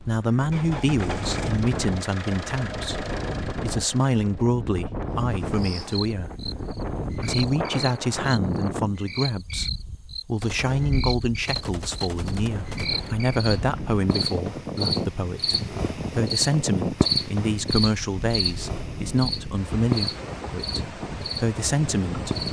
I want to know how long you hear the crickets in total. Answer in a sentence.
You can hear the crickets for 17 seconds altogether.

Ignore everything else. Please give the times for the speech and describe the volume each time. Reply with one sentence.
The speech can be heard from 0.0 to 22.4 s, at a steady volume.